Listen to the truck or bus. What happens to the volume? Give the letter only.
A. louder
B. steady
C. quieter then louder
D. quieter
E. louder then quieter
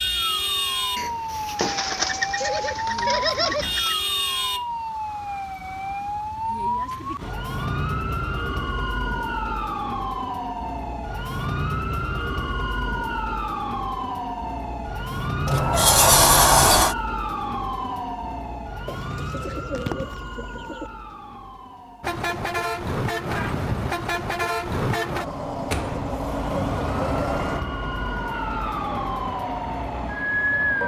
D.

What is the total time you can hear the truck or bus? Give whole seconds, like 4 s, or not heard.
9 s.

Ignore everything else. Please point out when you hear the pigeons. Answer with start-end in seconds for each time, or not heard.
1.6-4.0, 18.9-20.9.